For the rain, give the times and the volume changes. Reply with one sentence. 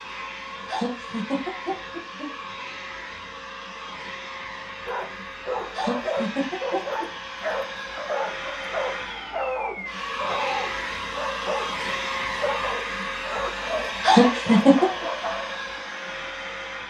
You can't hear the rain here.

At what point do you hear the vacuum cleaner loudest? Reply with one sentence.
The loudest moment of the vacuum cleaner is at 12 seconds.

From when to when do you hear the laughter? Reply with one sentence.
The laughter can be heard from 0.7 to 2.3 s, from 5.7 to 7.0 s and from 14.0 to 14.9 s.